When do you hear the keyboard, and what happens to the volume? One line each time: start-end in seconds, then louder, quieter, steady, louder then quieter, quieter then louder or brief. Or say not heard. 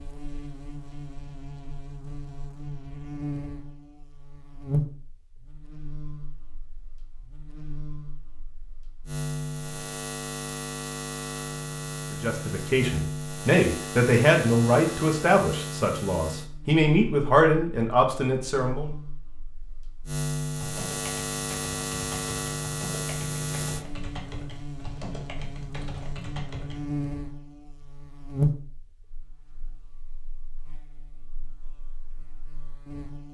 20.6-26.8 steady.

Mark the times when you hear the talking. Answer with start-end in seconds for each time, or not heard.
12.1-18.9.